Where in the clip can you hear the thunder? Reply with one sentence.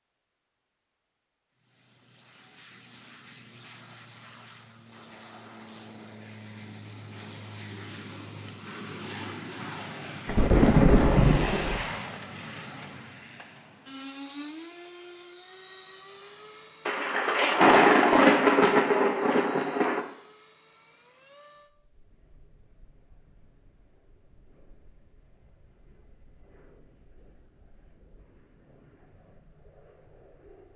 The thunder can be heard from 10.2 to 11.8 s and from 16.9 to 20.0 s.